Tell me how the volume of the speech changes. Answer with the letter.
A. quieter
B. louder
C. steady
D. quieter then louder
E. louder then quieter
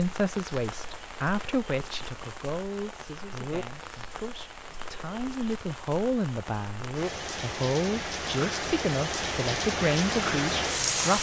D.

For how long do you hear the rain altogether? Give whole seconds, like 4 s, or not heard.
11 s.